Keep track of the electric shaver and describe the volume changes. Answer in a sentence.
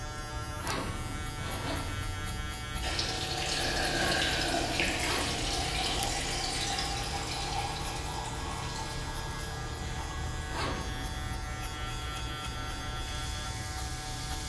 The volume of the electric shaver stays about the same.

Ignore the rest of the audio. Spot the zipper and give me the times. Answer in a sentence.
You can hear the zipper from 0.6 to 1.9 s, from 5.0 to 6.0 s and from 10.5 to 11.2 s.